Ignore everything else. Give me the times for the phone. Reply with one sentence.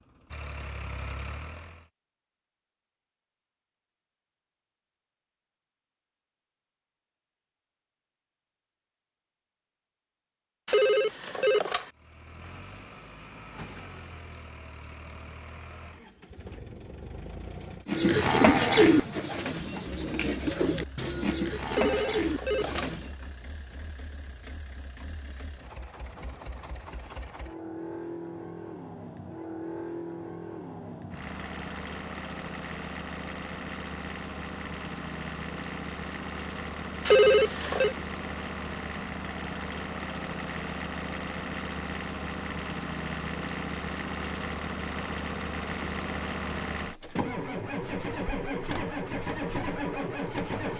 The phone can be heard from 10.7 to 11.9 s, from 21.7 to 22.9 s and from 37.0 to 38.0 s.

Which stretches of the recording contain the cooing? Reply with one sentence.
The cooing can be heard from 17.9 to 23.1 s.